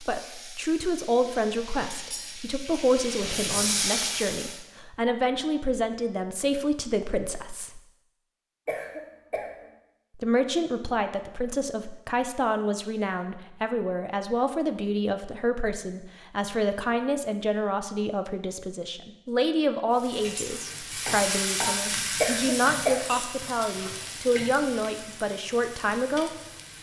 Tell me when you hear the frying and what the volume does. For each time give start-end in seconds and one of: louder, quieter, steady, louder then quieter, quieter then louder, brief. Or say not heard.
0.0-4.6 louder
19.9-26.7 quieter.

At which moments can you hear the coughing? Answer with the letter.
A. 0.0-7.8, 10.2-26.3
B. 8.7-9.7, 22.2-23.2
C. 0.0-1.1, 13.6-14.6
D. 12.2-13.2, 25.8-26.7
B.